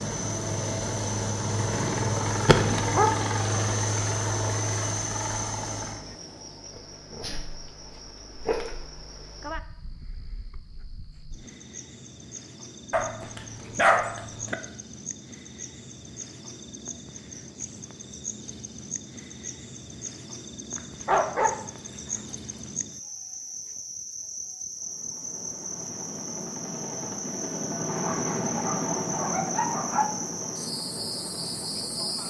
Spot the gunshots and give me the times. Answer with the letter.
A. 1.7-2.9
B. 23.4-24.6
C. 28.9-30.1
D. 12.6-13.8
A.